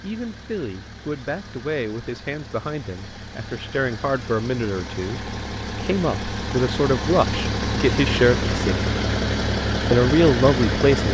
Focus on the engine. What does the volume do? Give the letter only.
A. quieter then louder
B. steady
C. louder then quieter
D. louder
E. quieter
D.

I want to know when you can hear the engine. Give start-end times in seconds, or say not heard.
0.0-11.0.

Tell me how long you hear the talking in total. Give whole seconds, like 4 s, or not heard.
10 s.